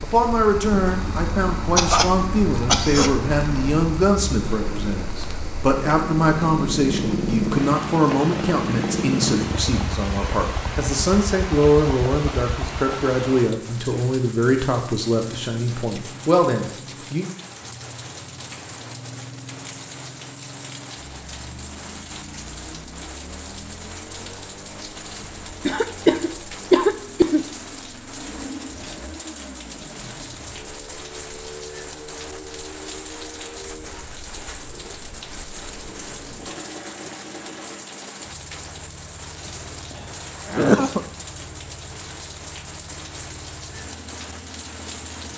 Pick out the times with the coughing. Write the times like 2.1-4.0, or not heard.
1.8-3.1, 25.6-27.4, 40.5-41.0.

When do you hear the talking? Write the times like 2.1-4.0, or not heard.
0.0-17.3.